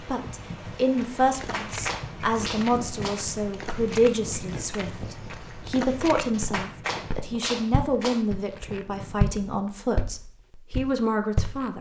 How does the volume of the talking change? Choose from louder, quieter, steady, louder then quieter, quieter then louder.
steady.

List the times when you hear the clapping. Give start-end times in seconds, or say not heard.
1.4-3.2, 6.3-8.2.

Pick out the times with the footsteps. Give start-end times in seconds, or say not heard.
0.8-11.7.